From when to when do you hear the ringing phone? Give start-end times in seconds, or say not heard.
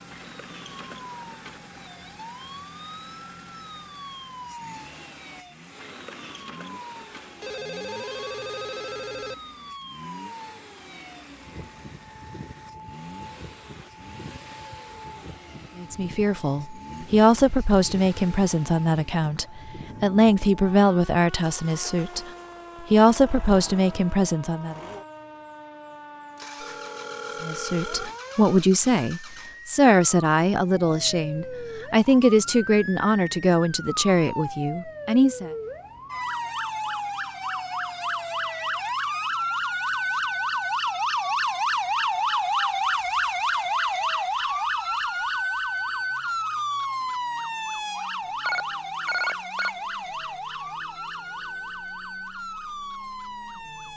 7.4-9.3, 26.6-28.1, 48.5-49.7.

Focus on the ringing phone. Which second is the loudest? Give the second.
49 s.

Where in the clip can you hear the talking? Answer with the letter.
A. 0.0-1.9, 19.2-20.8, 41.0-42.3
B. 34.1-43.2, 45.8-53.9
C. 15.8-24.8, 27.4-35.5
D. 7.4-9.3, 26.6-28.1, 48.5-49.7
C.